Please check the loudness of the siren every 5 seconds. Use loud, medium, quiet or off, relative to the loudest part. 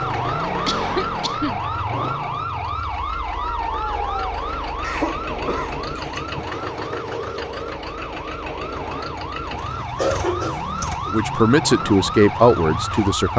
loud, medium, loud.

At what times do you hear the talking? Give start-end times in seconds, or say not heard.
11.1-13.3.